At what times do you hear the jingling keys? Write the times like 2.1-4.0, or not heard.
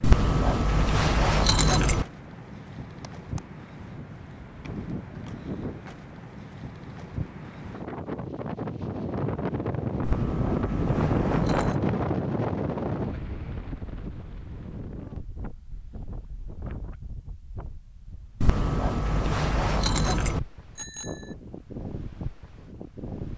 0.0-2.0, 10.0-11.8, 18.4-20.4.